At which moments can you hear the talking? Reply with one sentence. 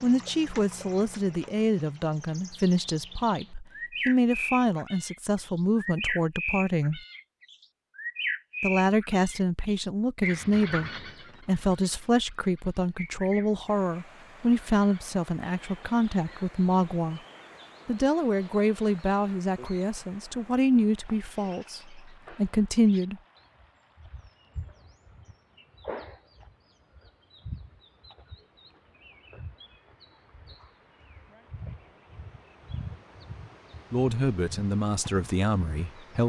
The talking can be heard from 0.0 to 7.0 s, from 8.6 to 17.2 s, from 17.9 to 23.2 s and from 33.9 to 36.2 s.